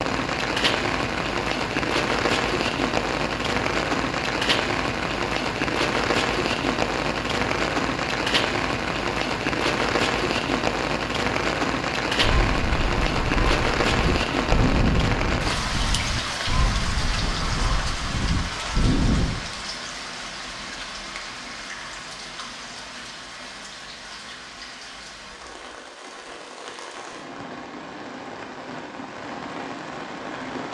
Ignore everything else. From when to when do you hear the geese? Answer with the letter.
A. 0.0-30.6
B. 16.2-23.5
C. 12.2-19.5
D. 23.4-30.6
C.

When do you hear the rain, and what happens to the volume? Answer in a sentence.
You can hear the rain from 0.0 to 30.6 s, getting quieter.